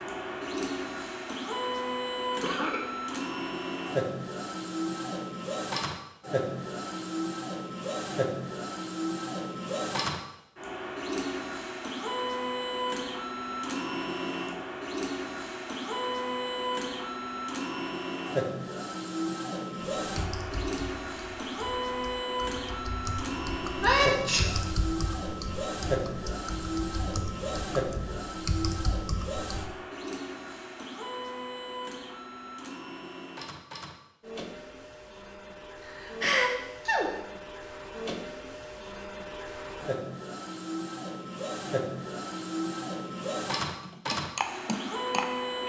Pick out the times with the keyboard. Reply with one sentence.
The keyboard can be heard from 20.1 to 29.8 s and from 43.8 to 45.6 s.